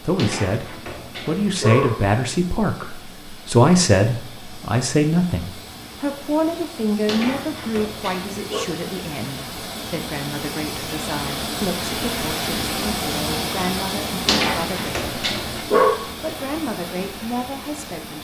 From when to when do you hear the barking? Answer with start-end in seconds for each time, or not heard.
0.1-1.9, 7.0-8.7, 14.2-16.0.